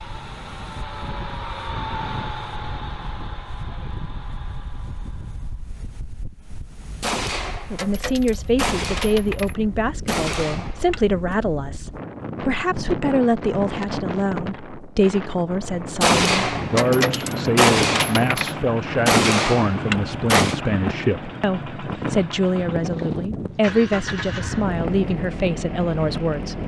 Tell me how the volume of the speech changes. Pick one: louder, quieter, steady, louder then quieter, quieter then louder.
steady.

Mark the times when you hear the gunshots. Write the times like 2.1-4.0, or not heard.
7.0-11.1, 16.0-20.6.